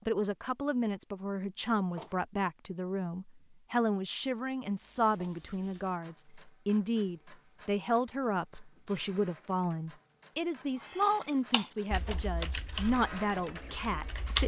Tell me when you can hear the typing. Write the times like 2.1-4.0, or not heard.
10.8-14.4.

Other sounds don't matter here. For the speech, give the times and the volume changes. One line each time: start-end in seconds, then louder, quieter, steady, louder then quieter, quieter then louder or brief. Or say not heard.
0.1-14.4 steady.